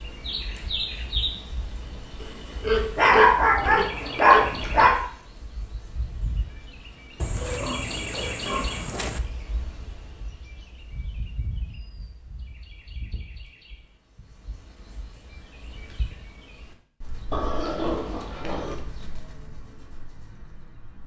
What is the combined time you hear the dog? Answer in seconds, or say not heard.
2 s.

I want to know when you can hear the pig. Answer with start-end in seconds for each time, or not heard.
2.2-4.8, 7.2-9.2, 17.3-18.8.